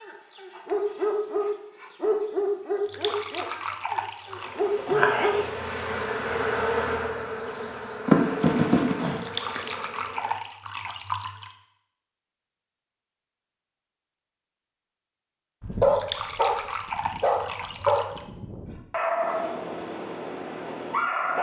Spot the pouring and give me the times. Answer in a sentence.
The pouring can be heard from 2.9 to 4.6 s, from 9.2 to 11.6 s and from 15.9 to 18.2 s.